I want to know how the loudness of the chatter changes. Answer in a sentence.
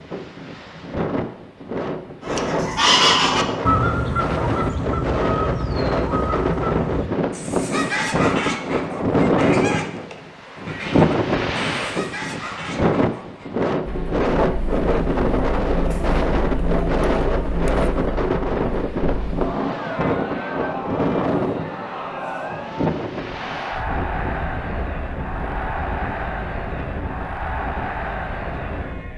The loudness of the chatter stays about the same.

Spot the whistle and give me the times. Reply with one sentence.
You can't hear the whistle here.